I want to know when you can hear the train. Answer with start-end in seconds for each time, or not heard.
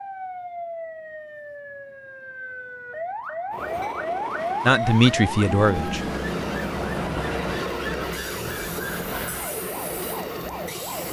3.5-11.0.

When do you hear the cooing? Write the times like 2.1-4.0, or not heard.
not heard.